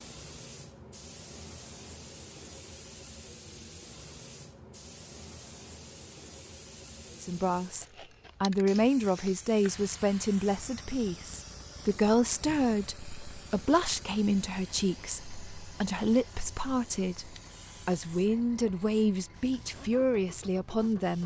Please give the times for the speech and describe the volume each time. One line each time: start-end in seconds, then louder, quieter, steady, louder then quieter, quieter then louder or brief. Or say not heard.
7.2-21.2 steady.